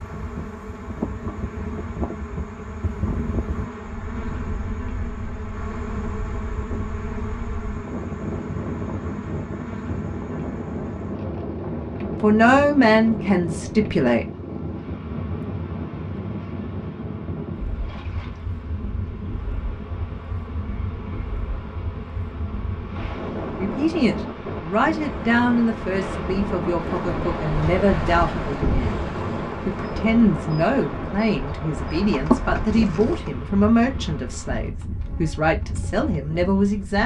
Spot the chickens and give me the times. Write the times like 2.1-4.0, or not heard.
31.8-33.3.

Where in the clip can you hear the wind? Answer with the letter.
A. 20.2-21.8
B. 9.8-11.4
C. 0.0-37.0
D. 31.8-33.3
C.